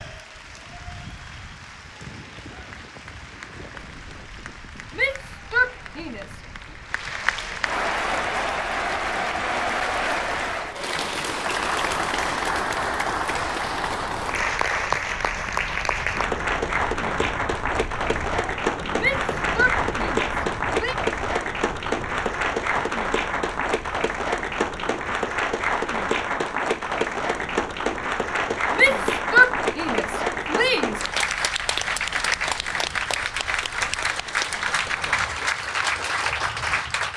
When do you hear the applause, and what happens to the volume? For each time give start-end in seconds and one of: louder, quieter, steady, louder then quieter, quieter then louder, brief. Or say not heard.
0.0-37.1 louder.